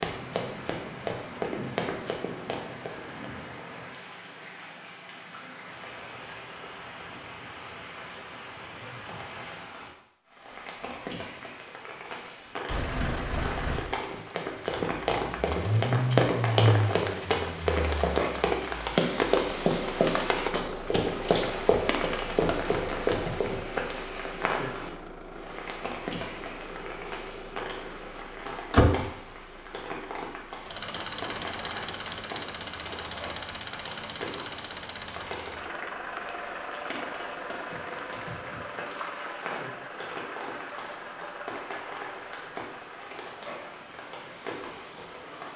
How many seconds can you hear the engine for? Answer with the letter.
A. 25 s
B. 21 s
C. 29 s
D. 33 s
D.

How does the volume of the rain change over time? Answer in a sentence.
The volume of the rain goes up, then down.